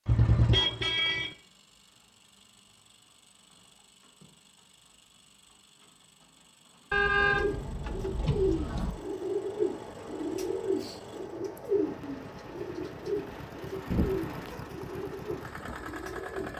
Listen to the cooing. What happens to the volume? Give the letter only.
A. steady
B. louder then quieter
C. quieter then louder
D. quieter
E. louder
D.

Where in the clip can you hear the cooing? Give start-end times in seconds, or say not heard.
7.2-16.5.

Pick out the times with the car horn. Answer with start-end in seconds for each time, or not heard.
0.1-1.4, 6.9-8.9, 13.9-14.6.